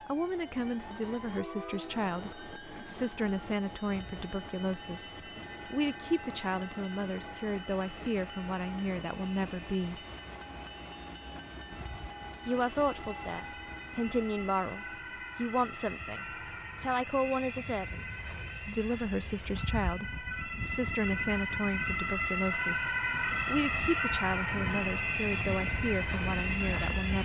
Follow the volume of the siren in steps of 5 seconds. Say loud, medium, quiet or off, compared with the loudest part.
quiet, quiet, quiet, medium, loud, loud.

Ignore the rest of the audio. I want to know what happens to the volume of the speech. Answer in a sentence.
The loudness of the speech stays about the same.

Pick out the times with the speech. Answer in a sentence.
You can hear the speech from 0.1 to 10.0 s and from 12.4 to 27.2 s.